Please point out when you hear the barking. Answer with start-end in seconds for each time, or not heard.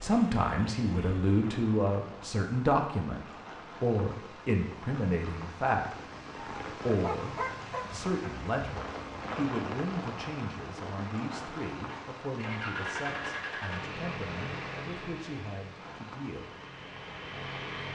6.3-8.1.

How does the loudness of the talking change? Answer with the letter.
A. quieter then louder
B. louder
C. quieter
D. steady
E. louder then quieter
C.